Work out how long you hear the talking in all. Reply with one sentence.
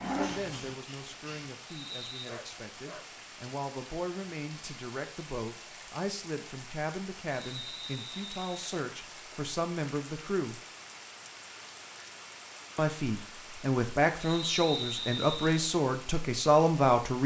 You can hear the talking for 15 seconds altogether.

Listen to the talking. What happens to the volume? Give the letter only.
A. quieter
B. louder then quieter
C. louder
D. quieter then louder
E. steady
C.